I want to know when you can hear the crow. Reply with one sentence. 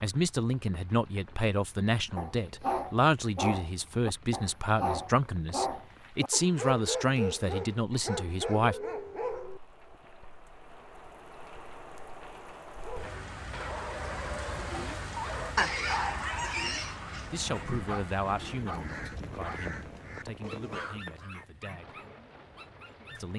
You can hear the crow from 16.8 to 21.4 s.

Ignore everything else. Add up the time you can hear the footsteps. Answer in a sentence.
You can't hear the footsteps here.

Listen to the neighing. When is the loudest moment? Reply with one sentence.
The volume of the neighing peaks at 16 seconds.